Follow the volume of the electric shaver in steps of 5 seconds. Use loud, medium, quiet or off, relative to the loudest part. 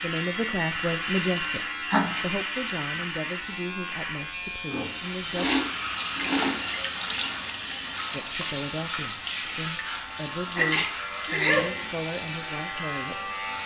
loud, medium, loud.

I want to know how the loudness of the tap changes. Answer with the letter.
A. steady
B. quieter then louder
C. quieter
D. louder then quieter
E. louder
C.